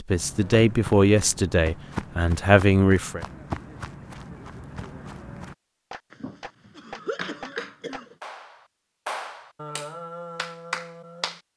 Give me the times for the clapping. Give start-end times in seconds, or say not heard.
5.9-11.4.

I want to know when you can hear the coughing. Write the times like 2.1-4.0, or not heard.
6.1-8.2.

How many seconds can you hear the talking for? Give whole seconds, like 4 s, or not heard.
3 s.